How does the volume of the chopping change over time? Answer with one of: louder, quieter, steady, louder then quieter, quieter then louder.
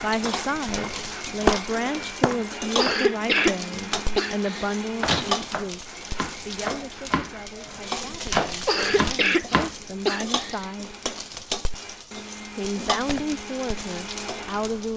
louder.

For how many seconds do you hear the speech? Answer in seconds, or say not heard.
13 s.